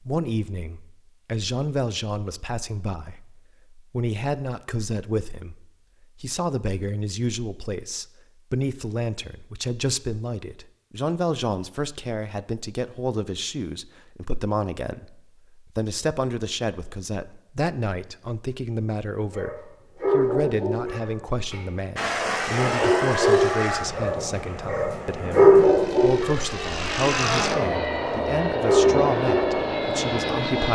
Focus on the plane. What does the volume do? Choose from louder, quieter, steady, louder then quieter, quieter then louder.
quieter then louder.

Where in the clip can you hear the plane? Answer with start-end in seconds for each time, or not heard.
21.9-30.6.